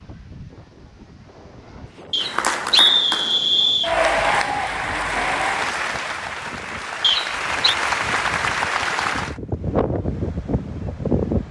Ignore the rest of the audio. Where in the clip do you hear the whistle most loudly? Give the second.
3 s.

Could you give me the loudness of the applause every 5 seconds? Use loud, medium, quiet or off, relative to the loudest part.
loud, loud, off.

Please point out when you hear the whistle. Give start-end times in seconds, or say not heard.
2.1-4.0, 7.0-7.8.